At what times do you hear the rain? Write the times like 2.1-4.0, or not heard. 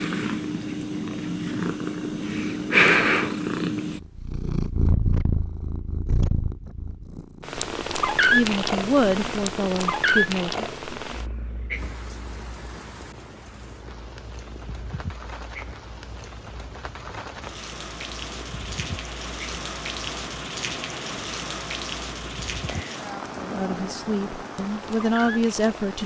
11.7-26.0.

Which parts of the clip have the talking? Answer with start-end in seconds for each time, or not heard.
8.3-10.7, 23.4-26.0.